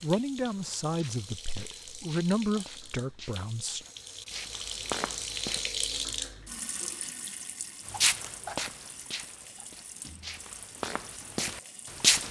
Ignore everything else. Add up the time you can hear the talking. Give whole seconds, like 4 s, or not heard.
4 s.